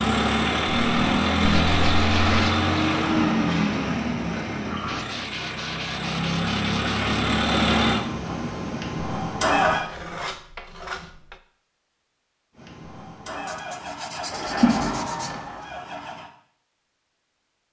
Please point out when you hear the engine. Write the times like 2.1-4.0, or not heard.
0.0-9.8, 12.6-16.3.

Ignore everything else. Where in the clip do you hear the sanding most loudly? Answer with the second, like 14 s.
2 s.